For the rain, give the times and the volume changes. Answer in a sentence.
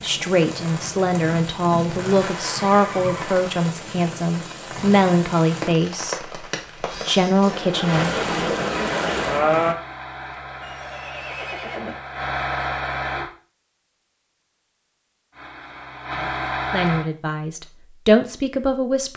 The rain can be heard from 0.0 to 9.8 s, getting louder.